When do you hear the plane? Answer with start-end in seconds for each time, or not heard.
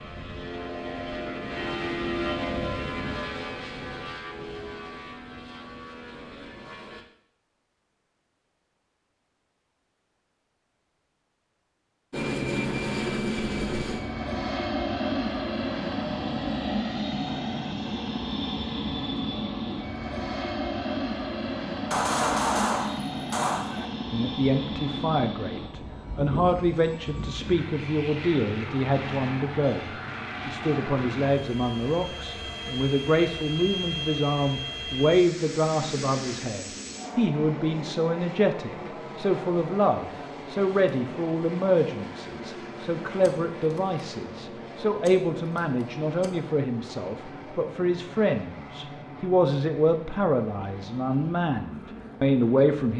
0.0-7.0, 12.1-52.9.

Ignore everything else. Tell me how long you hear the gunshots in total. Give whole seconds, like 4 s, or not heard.
4 s.